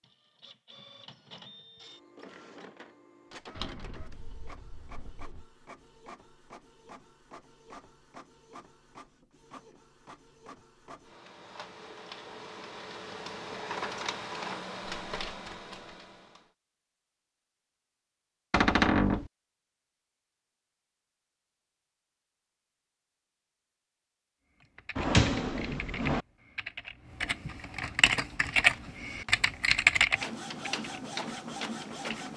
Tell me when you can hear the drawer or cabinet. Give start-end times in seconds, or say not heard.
3.5-5.5, 18.5-19.3, 24.9-26.2.